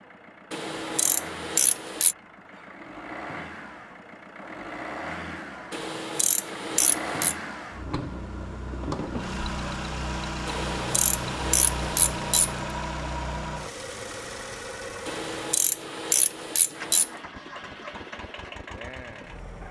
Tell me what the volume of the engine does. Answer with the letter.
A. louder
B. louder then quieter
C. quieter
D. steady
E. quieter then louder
B.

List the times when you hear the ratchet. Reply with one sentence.
The ratchet can be heard from 0.5 to 2.1 s, from 5.7 to 7.3 s, from 10.4 to 12.6 s and from 15.1 to 17.1 s.